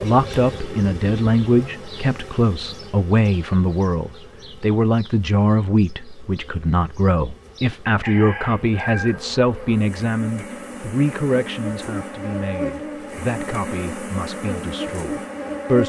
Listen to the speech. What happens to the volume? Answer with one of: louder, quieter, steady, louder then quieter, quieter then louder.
quieter.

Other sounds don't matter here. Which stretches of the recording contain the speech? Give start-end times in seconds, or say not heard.
0.0-15.8.